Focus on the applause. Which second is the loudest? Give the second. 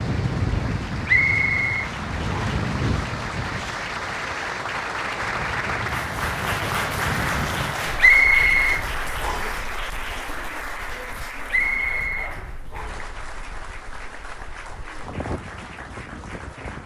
7 s.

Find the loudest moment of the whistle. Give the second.
8 s.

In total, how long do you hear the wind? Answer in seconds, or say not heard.
17 s.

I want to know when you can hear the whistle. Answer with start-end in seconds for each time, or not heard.
1.1-2.4, 8.0-9.6, 11.5-13.1.